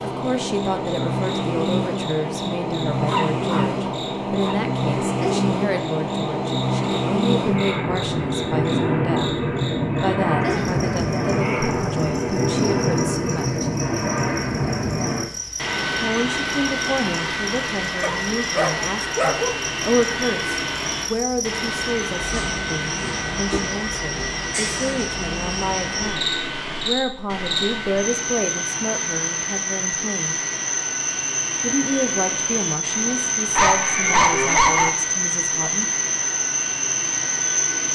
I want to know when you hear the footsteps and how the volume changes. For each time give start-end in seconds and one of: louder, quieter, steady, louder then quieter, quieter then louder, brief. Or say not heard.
not heard.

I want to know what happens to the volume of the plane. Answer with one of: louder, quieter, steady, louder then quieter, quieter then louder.
quieter.